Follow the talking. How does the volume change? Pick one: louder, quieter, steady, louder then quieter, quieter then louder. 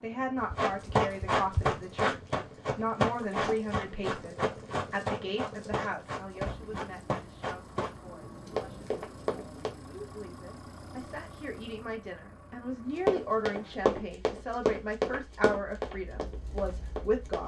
quieter then louder.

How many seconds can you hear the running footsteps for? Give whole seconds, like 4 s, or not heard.
14 s.